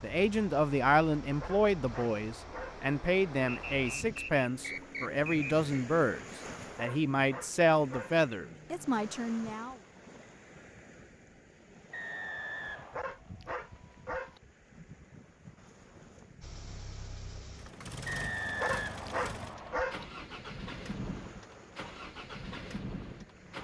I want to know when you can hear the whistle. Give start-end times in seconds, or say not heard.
3.5-5.8, 11.9-13.0, 18.1-19.8.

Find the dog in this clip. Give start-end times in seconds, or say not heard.
1.4-2.9, 6.8-8.2, 12.9-14.4, 18.6-20.1.